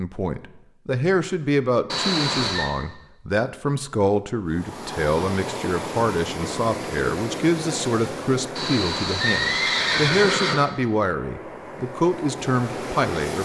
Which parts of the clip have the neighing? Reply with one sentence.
You can hear the neighing from 1.9 to 2.7 s and from 8.6 to 10.6 s.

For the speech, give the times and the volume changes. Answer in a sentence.
You can hear the speech from 0.0 to 13.3 s, at a steady volume.